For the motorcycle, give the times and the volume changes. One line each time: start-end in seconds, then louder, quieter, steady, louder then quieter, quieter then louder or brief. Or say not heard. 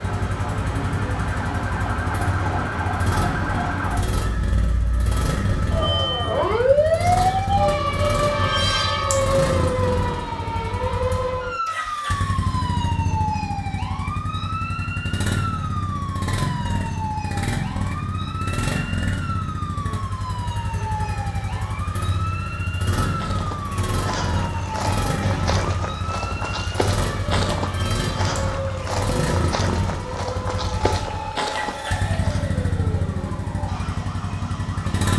0.0-35.1 steady.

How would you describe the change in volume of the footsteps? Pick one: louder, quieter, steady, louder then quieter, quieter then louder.
steady.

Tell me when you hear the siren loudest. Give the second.
7 s.